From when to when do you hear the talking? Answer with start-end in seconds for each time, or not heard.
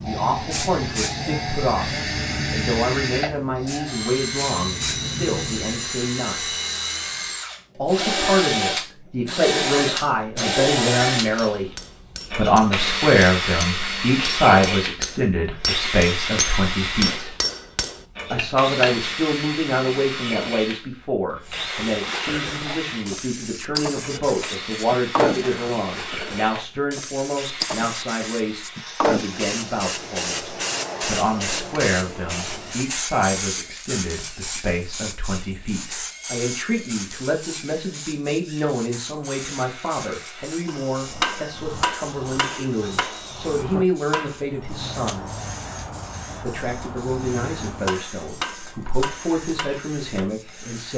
0.0-6.5, 7.8-11.7, 12.3-17.4, 18.3-45.2, 46.4-50.9.